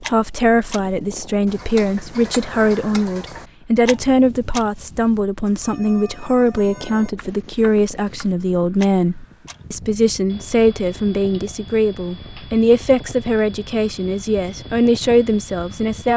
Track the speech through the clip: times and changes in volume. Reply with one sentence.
The speech can be heard from 0.0 to 16.1 s, at a steady volume.